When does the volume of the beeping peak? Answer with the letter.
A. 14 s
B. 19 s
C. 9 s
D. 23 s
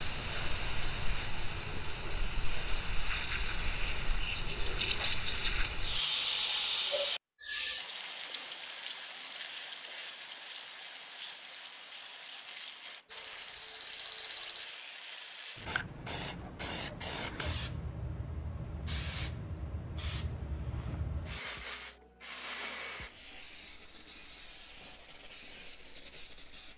A.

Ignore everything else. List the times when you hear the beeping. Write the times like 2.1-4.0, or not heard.
13.1-14.8.